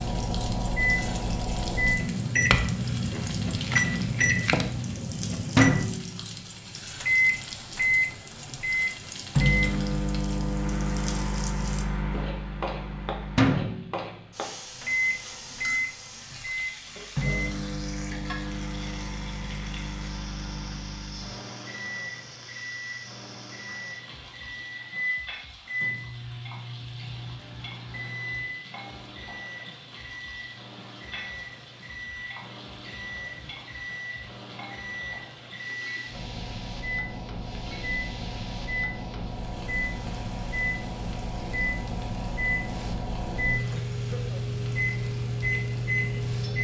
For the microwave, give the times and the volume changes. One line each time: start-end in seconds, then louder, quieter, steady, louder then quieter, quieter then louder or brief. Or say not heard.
0.0-46.5 quieter then louder.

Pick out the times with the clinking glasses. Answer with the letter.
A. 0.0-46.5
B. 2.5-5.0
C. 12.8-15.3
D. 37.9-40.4
B.